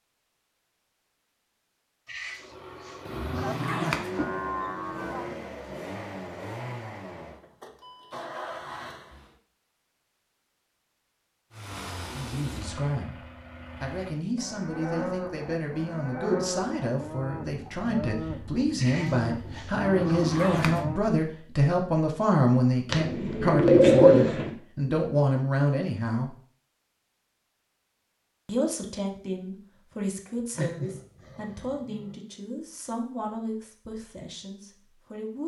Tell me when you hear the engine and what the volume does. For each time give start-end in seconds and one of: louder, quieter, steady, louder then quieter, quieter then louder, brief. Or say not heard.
2.3-9.3 steady
11.5-14.2 brief.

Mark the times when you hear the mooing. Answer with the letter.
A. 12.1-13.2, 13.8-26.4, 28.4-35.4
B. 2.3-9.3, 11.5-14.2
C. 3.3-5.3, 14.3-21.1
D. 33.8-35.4
C.